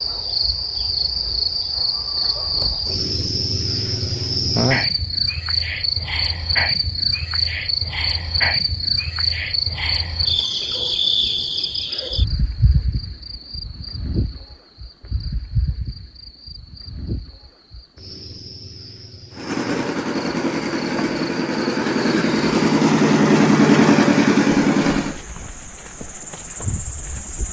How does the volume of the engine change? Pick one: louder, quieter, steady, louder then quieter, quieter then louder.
louder.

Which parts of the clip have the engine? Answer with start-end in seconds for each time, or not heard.
19.3-25.2.